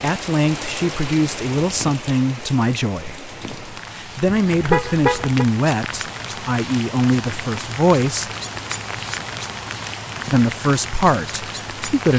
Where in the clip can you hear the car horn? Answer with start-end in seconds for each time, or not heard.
4.2-5.5.